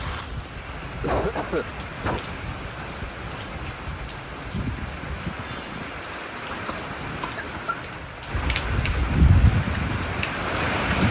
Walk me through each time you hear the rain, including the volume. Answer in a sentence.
You can hear the rain from 0.0 to 11.0 s, getting louder.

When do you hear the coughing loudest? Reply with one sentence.
The loudest moment of the coughing is at 1 second.